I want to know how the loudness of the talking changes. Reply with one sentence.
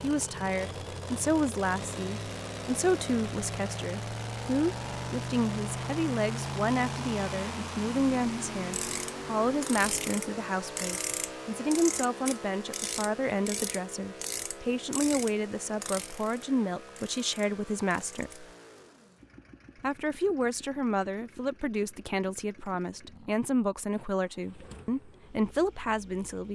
The volume of the talking stays about the same.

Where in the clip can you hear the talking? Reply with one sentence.
You can hear the talking from 0.0 to 18.4 s and from 19.8 to 26.5 s.